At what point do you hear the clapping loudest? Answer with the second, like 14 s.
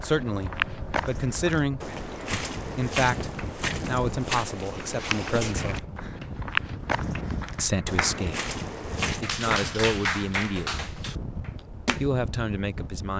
10 s.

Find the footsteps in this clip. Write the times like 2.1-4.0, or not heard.
0.0-9.2.